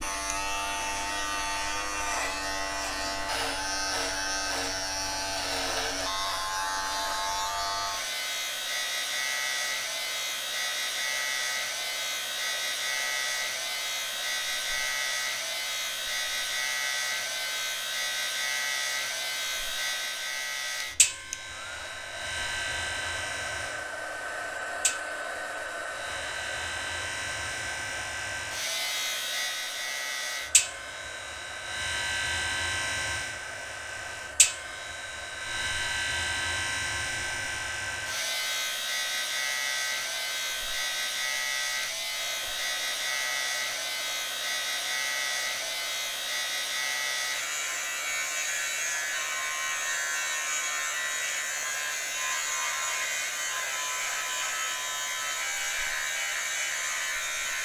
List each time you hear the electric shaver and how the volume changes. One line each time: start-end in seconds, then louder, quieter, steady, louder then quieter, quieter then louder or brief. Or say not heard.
0.0-57.6 steady.